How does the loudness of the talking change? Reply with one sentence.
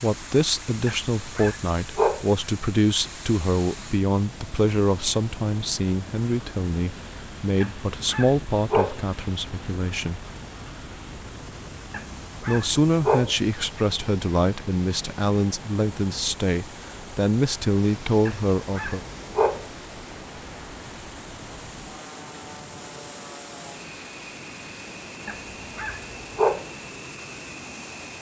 The volume of the talking stays about the same.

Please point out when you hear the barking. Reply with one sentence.
The barking can be heard from 0.8 to 2.2 s, from 7.6 to 9.0 s, from 11.9 to 13.3 s, from 18.2 to 19.6 s and from 25.2 to 26.7 s.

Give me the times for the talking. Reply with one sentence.
The talking can be heard from 0.0 to 10.2 s and from 12.4 to 19.0 s.